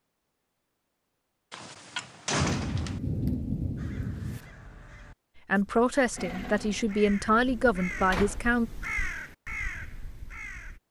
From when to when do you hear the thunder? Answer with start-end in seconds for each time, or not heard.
2.5-4.4.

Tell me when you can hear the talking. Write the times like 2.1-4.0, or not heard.
5.5-8.7.